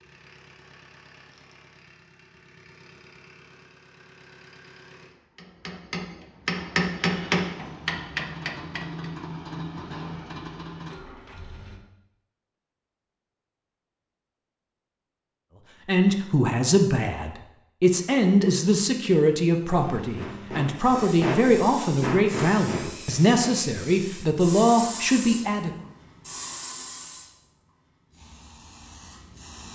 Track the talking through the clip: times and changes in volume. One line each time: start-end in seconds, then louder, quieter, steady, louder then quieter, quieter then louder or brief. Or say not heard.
15.8-25.7 steady.